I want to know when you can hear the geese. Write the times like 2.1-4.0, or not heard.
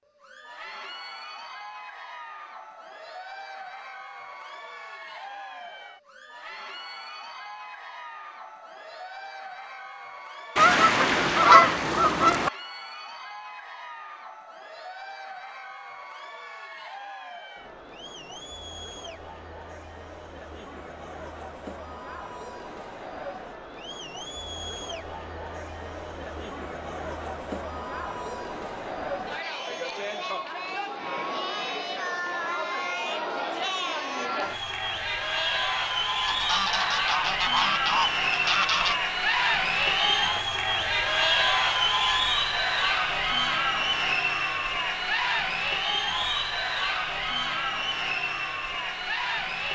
10.6-12.5, 36.2-39.0.